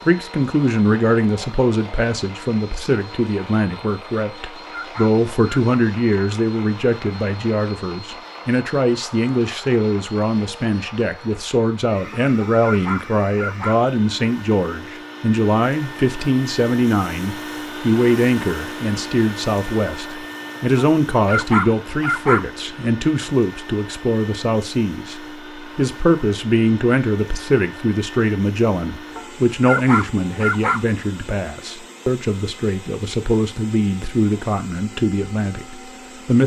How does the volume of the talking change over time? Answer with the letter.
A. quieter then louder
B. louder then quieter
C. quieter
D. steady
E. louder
D.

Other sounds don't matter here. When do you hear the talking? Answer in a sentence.
You can hear the talking from 0.1 to 36.4 s.